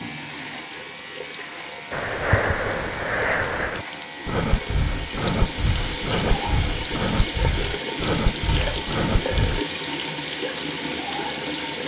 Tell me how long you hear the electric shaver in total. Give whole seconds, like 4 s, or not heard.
12 s.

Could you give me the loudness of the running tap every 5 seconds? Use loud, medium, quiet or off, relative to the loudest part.
medium, loud, loud.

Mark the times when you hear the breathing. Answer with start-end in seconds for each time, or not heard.
1.9-9.6.